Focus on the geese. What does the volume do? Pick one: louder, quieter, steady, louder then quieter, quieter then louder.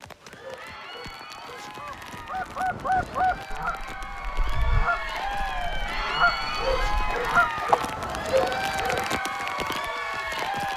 quieter then louder.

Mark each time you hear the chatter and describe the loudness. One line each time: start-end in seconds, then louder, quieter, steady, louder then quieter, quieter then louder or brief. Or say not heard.
0.1-10.7 louder.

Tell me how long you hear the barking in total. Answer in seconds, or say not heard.
4 s.